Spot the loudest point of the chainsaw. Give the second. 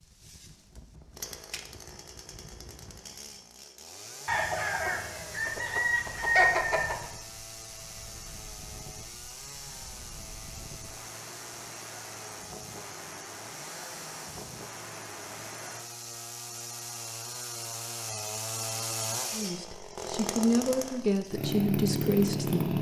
22 s.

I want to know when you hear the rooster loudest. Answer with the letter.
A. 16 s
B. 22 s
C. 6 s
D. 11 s
C.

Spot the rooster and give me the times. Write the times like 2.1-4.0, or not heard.
4.2-7.0.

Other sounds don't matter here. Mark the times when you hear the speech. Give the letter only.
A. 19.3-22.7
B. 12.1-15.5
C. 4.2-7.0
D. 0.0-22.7
A.